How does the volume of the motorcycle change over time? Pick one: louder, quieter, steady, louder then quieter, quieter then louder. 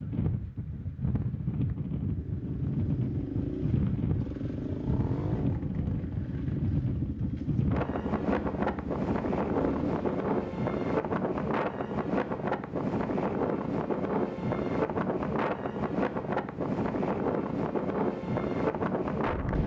steady.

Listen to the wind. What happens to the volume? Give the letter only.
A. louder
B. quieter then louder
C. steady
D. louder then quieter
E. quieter
C.